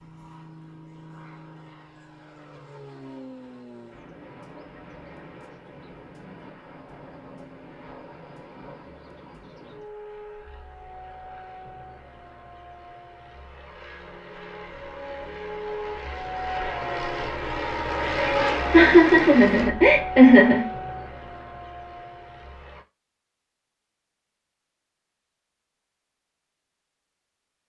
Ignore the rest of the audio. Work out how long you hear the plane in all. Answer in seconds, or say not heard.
23 s.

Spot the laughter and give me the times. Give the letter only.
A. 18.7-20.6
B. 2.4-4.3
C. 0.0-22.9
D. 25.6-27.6
A.